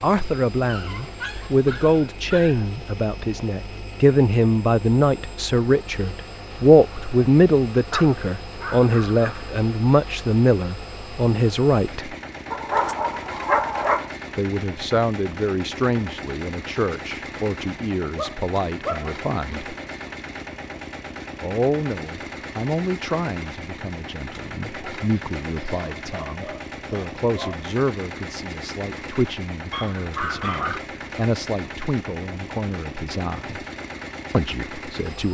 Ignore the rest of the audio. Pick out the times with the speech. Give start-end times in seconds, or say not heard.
0.0-12.2, 14.3-19.8, 21.4-33.6, 34.3-35.2.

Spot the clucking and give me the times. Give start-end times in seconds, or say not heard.
not heard.